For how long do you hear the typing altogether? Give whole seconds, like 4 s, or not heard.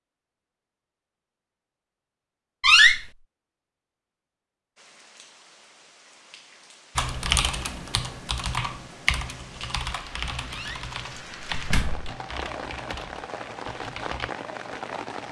7 s.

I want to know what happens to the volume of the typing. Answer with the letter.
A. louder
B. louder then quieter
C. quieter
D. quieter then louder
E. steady
C.